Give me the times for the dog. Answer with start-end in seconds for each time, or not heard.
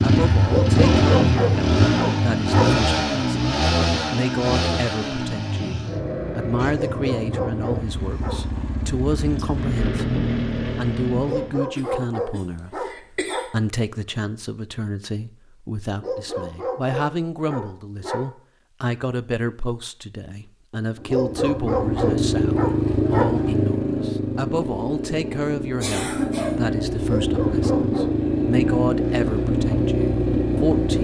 0.5-2.7, 6.7-8.3, 11.2-13.4, 16.0-18.2, 21.1-23.3, 27.1-28.1.